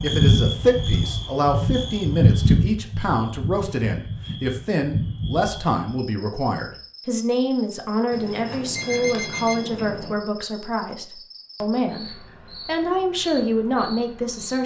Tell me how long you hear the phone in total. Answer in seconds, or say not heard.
2 s.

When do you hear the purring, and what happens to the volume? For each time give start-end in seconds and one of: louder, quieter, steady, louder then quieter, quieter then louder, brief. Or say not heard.
not heard.